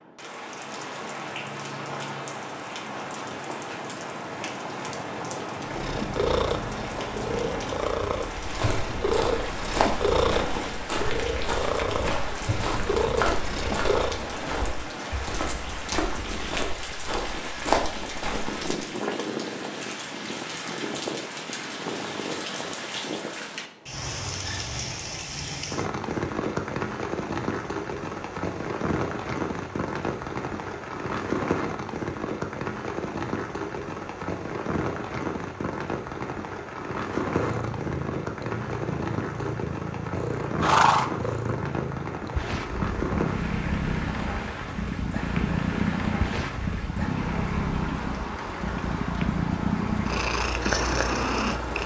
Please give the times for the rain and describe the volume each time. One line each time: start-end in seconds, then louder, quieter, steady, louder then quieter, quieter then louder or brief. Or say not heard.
0.0-51.8 steady.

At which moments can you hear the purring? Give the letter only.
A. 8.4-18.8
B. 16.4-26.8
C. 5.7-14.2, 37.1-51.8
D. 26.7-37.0
C.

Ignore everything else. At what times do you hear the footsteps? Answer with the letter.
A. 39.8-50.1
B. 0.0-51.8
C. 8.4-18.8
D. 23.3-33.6
C.